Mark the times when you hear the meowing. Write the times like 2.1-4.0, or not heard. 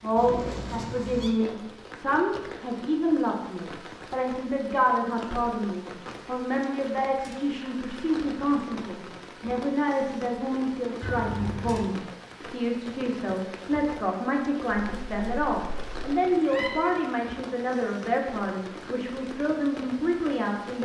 0.1-1.3, 11.0-11.9, 14.7-16.7.